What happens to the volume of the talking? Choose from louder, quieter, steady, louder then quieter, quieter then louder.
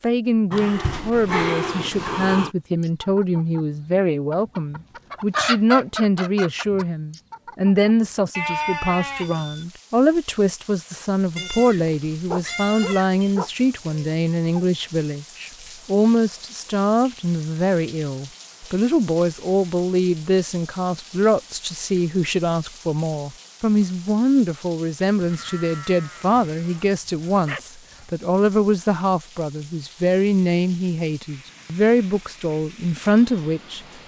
steady.